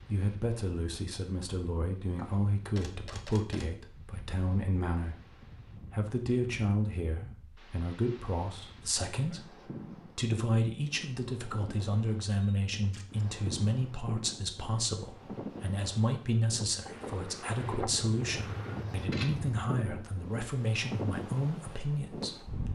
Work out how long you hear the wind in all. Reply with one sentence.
You can hear the wind for 23 seconds altogether.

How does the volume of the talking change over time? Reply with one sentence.
The loudness of the talking stays about the same.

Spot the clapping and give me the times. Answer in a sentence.
You can't hear the clapping here.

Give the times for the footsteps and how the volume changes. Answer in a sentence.
You can't hear the footsteps here.